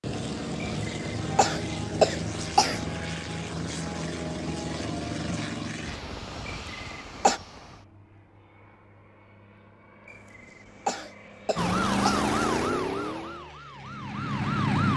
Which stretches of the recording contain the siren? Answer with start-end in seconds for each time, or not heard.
11.6-14.9.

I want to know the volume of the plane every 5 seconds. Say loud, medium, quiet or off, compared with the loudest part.
loud, medium, quiet.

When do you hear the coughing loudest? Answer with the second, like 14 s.
2 s.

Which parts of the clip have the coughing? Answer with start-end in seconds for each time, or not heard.
0.6-2.8, 6.5-7.4, 10.1-12.3.